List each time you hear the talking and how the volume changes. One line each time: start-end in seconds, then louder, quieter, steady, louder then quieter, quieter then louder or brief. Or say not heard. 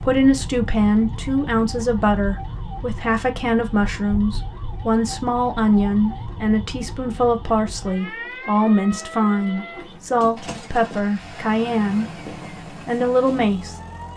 0.0-12.1 steady
12.8-13.8 brief.